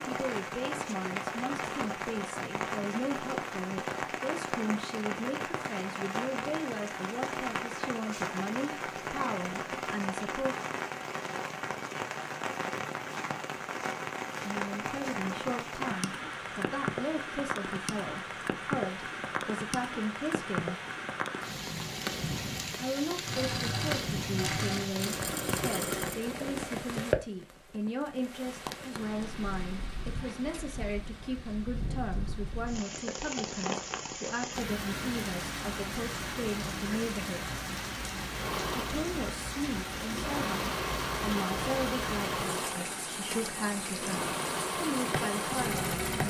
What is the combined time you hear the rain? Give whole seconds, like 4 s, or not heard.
46 s.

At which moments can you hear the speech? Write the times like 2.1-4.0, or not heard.
0.1-10.6, 14.4-20.8, 22.8-37.5, 38.7-46.2.